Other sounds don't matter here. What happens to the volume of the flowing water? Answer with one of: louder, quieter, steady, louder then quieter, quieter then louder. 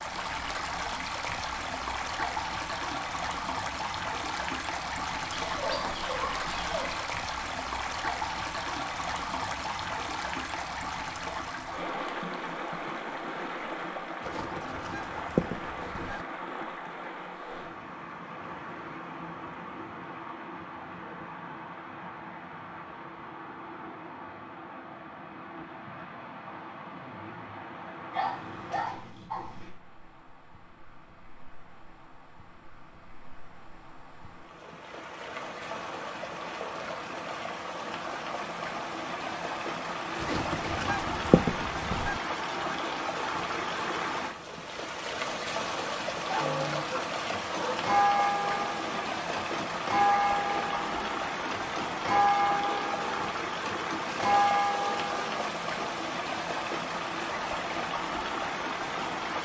quieter then louder.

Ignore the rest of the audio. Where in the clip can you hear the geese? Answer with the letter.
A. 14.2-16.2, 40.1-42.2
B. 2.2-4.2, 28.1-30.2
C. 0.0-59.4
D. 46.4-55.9
A.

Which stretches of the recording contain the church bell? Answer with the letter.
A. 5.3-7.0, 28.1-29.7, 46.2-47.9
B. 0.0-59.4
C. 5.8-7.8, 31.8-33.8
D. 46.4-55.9
D.